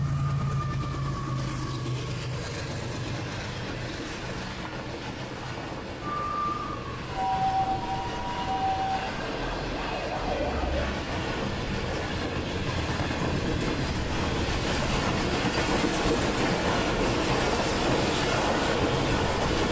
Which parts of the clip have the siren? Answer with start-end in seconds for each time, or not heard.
6.0-10.9.